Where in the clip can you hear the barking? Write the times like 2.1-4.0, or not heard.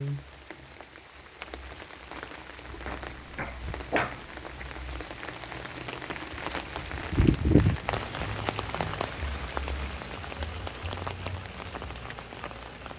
2.9-4.7.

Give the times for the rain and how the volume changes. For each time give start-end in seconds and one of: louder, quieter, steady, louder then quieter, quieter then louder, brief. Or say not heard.
0.0-12.9 louder then quieter.